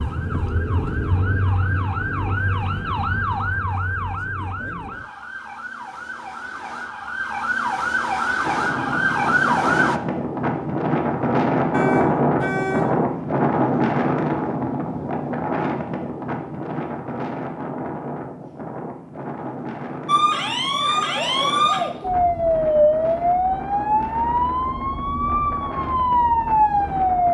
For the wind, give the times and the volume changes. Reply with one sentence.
The wind can be heard from 8.4 to 27.2 s, getting quieter.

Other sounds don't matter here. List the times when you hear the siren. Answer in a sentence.
You can hear the siren from 0.0 to 10.0 s and from 20.1 to 27.2 s.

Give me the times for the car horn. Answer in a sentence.
The car horn can be heard from 11.7 to 13.0 s.